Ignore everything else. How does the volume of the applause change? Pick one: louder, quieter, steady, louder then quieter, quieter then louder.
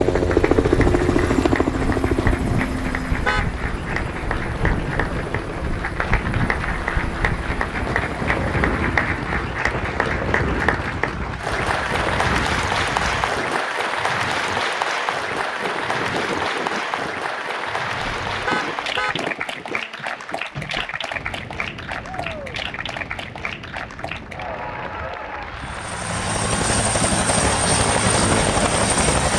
louder then quieter.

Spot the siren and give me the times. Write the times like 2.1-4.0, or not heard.
not heard.